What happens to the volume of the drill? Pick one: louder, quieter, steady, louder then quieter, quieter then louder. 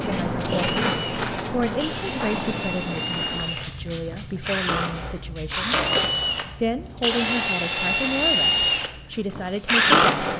louder.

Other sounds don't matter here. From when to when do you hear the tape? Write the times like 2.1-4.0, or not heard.
0.1-1.8, 5.7-6.1.